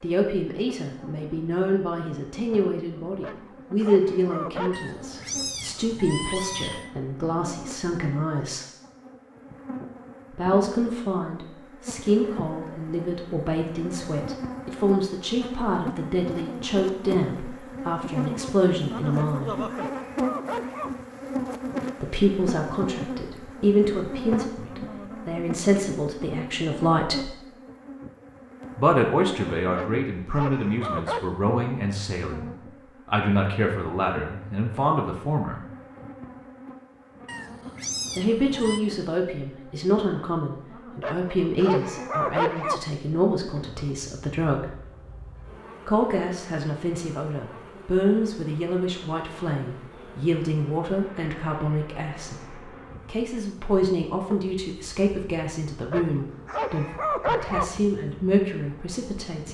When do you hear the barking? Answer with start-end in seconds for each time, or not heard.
3.2-4.8, 19.1-21.1, 29.7-31.2, 41.0-42.9, 55.9-57.8.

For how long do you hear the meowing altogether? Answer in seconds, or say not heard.
4 s.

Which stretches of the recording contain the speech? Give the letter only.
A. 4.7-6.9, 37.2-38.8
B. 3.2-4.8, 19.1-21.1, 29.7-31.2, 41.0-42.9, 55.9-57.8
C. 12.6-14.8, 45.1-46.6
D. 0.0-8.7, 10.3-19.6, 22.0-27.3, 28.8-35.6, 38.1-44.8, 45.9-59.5
D.